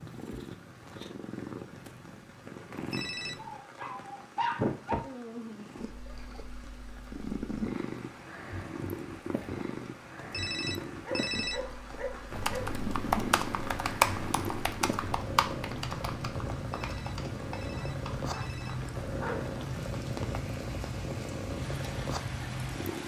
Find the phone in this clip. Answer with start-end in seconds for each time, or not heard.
2.8-3.5, 10.2-11.6, 16.6-18.9.